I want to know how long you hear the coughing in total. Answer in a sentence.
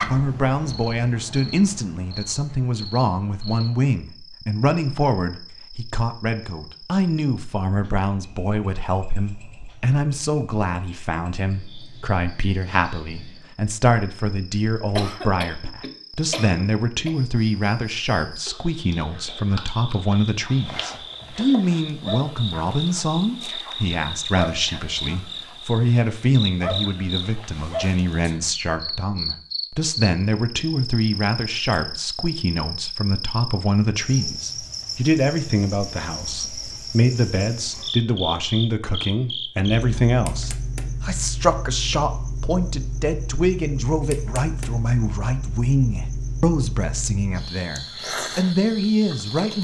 The coughing can be heard for 2 seconds in total.